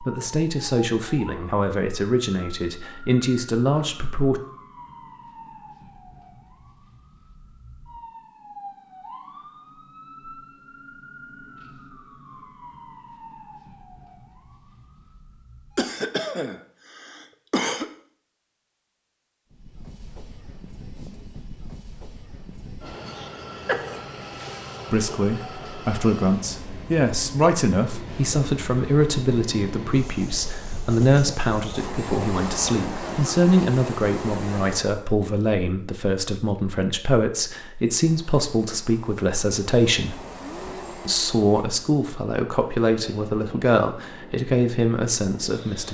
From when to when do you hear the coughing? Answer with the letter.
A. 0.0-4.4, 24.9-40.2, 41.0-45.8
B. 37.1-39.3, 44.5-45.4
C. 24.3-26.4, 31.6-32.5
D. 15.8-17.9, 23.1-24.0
D.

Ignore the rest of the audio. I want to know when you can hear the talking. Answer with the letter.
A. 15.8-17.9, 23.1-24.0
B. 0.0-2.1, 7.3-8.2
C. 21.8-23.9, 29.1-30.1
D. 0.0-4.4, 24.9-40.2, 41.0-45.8
D.